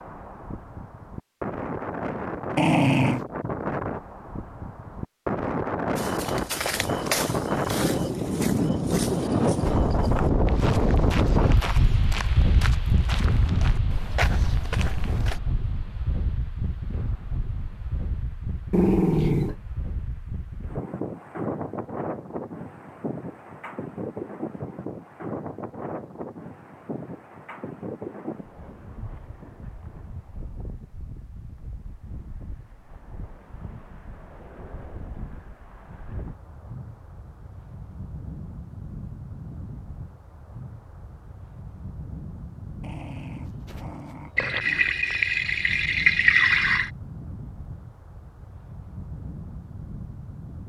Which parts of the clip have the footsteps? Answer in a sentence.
You can hear the footsteps from 6.0 to 15.4 s.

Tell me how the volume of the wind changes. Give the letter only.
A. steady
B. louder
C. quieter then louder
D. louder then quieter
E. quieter
E.